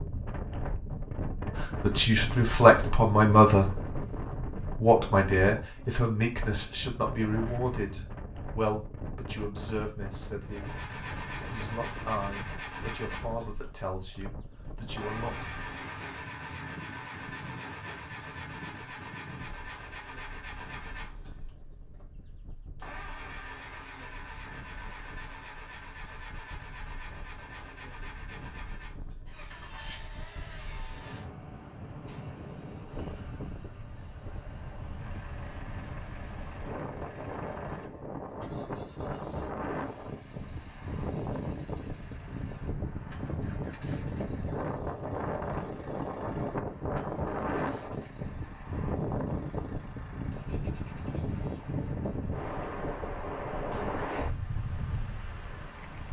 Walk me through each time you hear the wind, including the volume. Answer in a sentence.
You can hear the wind from 0.0 to 56.0 s, getting quieter then louder.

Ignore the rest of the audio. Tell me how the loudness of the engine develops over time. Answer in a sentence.
The volume of the engine goes down.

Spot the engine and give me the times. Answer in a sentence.
You can hear the engine from 10.4 to 52.4 s.